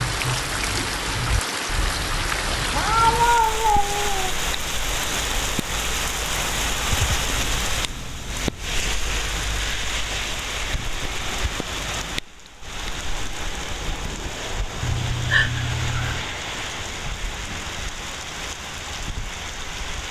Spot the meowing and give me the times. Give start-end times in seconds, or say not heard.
2.7-4.3, 6.8-8.9, 14.8-16.2.